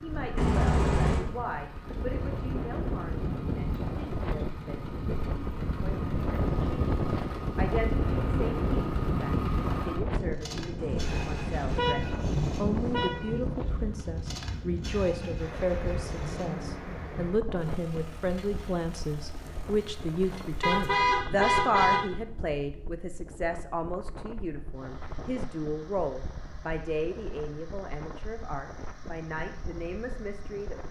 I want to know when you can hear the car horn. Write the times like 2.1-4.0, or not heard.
0.3-1.2, 10.8-13.3, 20.6-22.1.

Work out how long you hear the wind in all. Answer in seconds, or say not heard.
31 s.